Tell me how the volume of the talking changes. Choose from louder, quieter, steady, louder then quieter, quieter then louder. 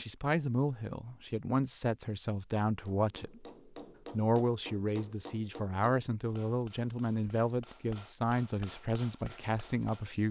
steady.